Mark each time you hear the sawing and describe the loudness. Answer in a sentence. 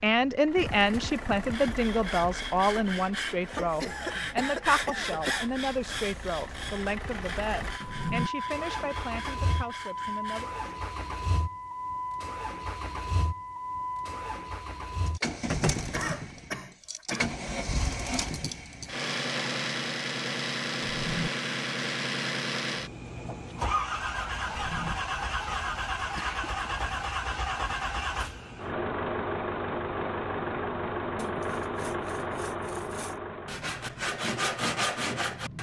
The sawing can be heard from 1.5 to 10.6 s, getting quieter; and from 31.1 to 35.5 s, getting louder.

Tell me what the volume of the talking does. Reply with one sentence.
The volume of the talking goes down.